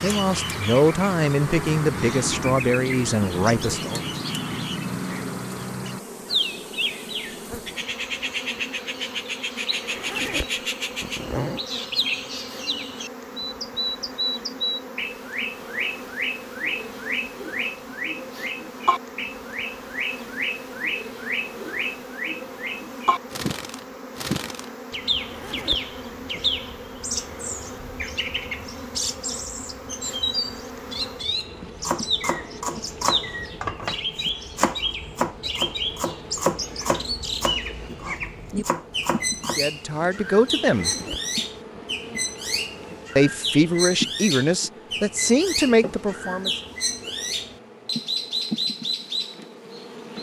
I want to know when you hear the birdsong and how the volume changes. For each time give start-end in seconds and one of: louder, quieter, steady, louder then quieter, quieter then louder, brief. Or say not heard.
0.0-50.1 steady.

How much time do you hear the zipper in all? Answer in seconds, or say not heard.
4 s.